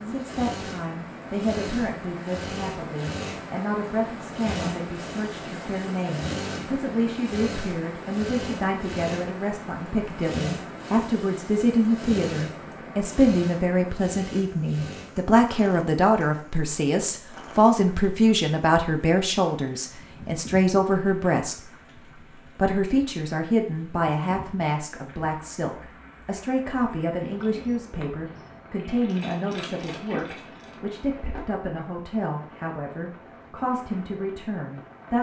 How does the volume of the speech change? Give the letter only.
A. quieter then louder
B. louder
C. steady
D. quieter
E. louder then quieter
E.